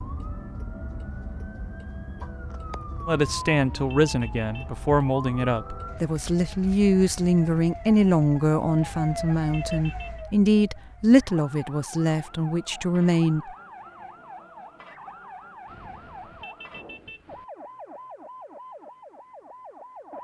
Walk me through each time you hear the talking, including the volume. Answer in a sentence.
The talking can be heard from 3.0 to 13.5 s, at a steady volume.